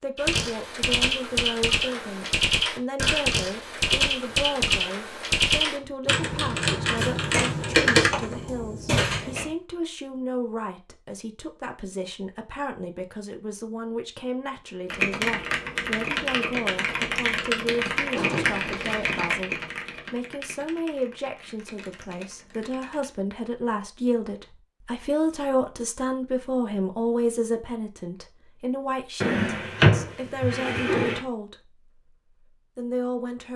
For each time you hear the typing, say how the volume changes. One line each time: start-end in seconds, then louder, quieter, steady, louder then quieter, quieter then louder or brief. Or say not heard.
0.1-8.3 steady
14.8-23.1 quieter.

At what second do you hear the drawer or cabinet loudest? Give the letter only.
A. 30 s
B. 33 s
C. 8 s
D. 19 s
A.